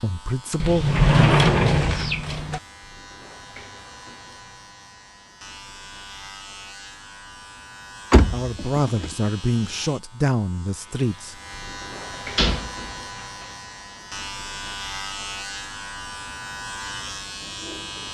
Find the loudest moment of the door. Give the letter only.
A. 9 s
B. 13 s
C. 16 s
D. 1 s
D.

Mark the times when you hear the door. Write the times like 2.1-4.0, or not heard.
0.6-2.6, 8.1-9.2, 12.3-13.4.